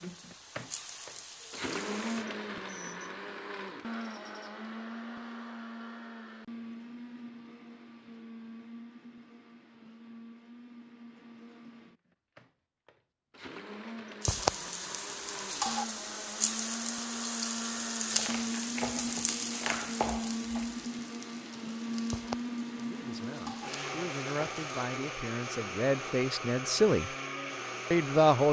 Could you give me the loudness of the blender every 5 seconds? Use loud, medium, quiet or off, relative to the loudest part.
loud, medium, medium, loud, loud, loud.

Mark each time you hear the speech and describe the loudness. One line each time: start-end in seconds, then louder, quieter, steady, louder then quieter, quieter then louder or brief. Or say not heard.
22.8-27.1 louder
27.9-28.4 brief.